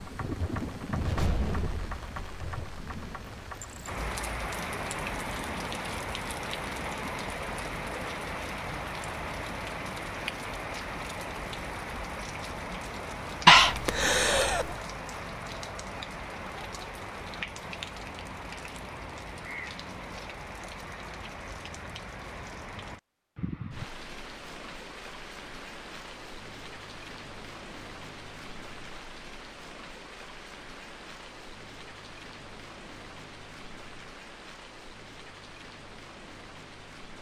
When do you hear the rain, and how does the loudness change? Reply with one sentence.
You can hear the rain from 0.0 to 37.1 s, getting quieter.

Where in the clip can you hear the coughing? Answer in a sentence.
The coughing can be heard from 13.4 to 14.8 s.